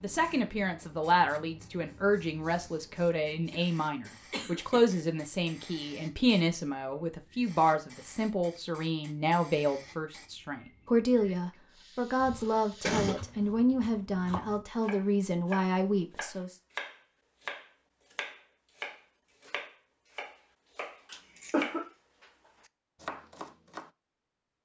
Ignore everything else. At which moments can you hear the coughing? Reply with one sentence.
The coughing can be heard from 3.5 to 4.8 s, from 12.2 to 13.2 s and from 21.1 to 21.8 s.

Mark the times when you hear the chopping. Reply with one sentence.
The chopping can be heard from 13.1 to 23.9 s.